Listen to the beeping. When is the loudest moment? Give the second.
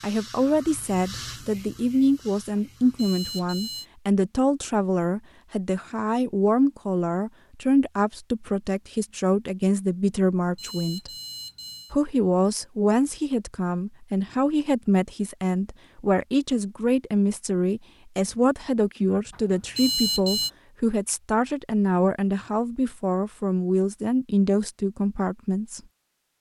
20 s.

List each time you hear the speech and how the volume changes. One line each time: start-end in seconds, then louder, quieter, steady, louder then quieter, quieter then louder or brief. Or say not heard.
0.0-11.1 steady
11.9-25.8 steady.